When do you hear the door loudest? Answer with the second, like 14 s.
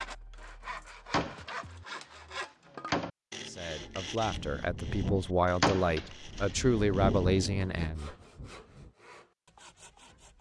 6 s.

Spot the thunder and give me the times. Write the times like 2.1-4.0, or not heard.
4.2-8.9.